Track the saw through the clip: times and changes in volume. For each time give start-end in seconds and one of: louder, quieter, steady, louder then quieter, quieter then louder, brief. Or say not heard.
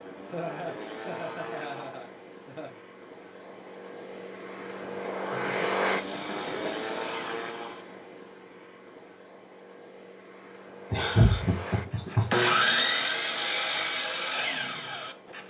5.8-7.8 brief
11.0-15.4 louder then quieter.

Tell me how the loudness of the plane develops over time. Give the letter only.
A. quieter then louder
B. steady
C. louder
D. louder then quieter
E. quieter
D.